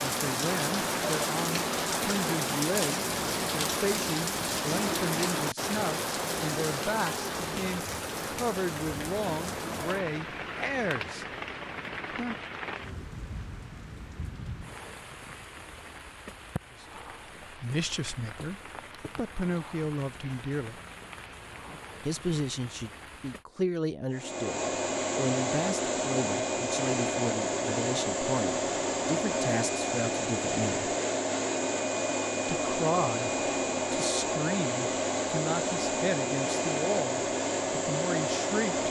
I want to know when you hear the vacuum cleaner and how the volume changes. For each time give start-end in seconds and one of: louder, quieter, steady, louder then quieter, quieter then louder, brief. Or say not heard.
24.1-38.8 steady.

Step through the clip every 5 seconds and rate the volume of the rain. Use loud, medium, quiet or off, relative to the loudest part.
loud, loud, medium, quiet, quiet, off, off, off.